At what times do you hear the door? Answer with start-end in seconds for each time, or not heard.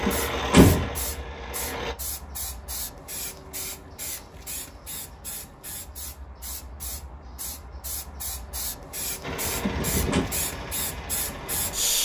0.1-0.9, 9.6-10.2.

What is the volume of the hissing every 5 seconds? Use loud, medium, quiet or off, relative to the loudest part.
medium, medium, loud.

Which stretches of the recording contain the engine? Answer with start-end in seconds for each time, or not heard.
0.0-1.9, 9.2-11.9.